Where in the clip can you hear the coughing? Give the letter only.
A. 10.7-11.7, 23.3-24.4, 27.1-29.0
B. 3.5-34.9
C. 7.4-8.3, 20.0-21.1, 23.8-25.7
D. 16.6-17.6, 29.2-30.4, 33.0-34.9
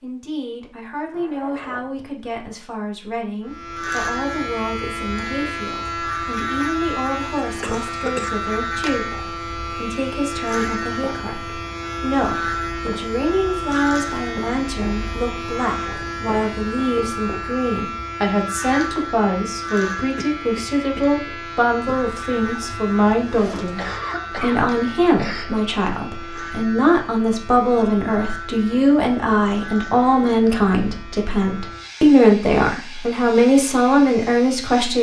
C.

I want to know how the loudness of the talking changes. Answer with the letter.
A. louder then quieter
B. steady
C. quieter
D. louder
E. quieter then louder
D.